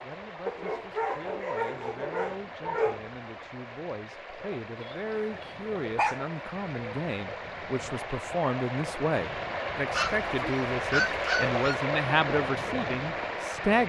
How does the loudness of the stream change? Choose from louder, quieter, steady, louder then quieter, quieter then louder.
louder.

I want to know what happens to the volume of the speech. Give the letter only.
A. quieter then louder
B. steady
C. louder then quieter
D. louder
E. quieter
D.